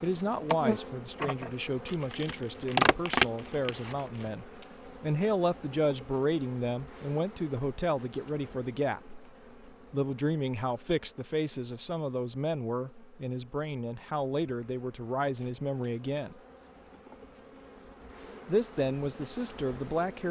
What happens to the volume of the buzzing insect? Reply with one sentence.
The loudness of the buzzing insect goes down, then up.